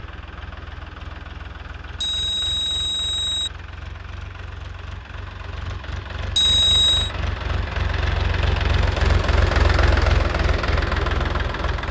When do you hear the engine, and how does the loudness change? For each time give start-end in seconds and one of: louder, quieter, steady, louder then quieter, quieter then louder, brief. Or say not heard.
0.0-11.8 louder.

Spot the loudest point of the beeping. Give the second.
7 s.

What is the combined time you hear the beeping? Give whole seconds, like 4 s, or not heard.
2 s.